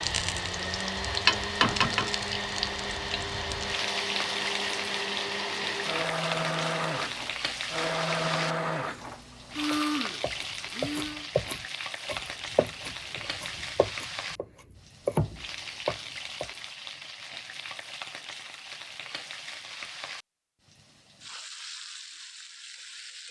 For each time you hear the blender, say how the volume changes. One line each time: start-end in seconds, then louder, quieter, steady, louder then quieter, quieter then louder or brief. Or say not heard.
0.0-11.3 steady.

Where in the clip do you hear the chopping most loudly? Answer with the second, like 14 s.
15 s.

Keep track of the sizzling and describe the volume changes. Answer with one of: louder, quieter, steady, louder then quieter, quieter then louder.
quieter.